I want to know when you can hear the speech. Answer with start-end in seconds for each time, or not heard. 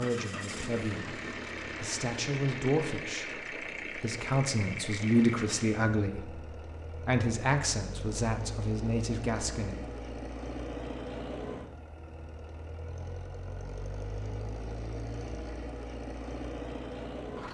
0.0-9.9.